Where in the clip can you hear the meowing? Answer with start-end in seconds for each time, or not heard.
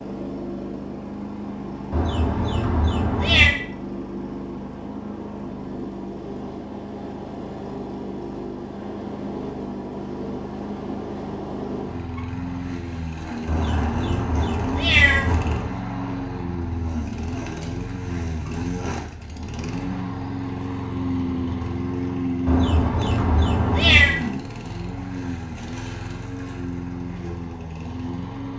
1.9-3.5, 13.4-15.8, 22.4-24.1.